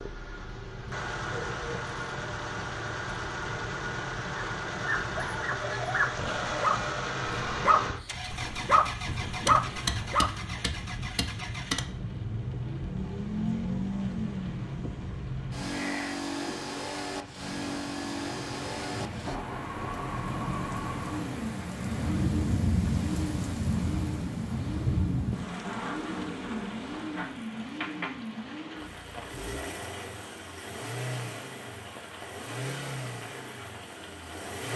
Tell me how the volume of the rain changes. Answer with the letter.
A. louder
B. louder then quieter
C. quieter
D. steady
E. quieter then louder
B.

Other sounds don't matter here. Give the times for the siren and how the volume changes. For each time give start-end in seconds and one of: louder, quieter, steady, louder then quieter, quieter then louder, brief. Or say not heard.
not heard.